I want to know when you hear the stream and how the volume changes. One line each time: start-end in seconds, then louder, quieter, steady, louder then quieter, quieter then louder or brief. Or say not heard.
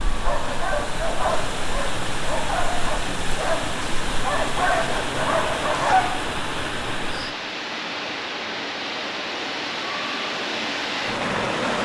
0.0-11.7 steady.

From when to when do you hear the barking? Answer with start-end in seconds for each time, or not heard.
0.2-6.1.